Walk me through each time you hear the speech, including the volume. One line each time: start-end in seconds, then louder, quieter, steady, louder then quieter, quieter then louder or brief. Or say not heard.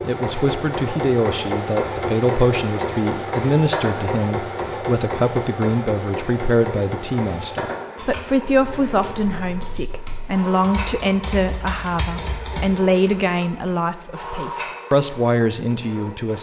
0.0-16.3 steady.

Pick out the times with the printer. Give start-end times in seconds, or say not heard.
0.0-16.3.